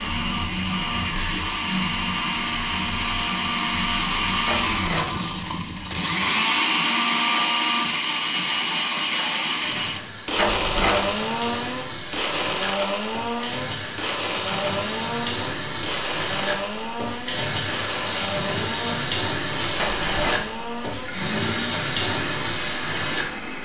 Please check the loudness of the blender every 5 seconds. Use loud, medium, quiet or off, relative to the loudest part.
loud, loud, loud, medium, medium.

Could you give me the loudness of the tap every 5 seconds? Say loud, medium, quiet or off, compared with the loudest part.
medium, medium, medium, loud, loud.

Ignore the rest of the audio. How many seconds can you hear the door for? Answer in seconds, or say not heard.
2 s.